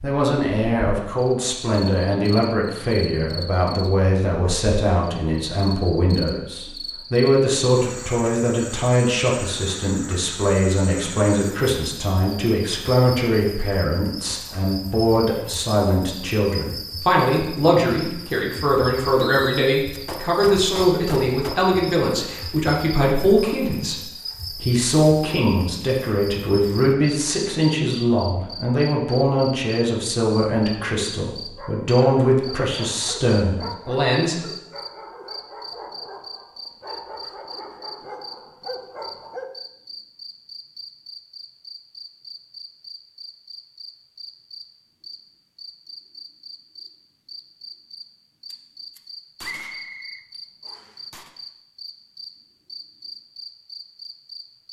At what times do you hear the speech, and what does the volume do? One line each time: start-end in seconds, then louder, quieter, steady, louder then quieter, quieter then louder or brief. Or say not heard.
0.0-34.5 steady.